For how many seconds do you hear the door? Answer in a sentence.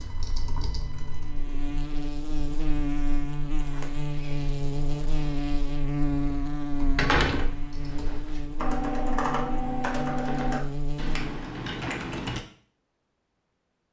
You can hear the door for 3 seconds altogether.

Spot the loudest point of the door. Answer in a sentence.
The volume of the door peaks at 7 seconds.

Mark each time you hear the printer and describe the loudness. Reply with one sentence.
You can't hear the printer here.